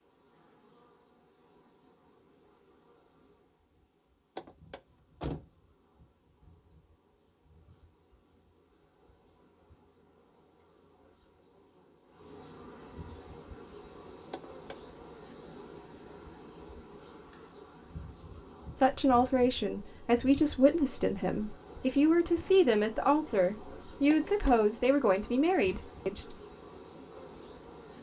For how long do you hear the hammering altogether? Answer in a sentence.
You can't hear the hammering here.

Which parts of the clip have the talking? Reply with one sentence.
You can hear the talking from 18.8 to 26.4 s.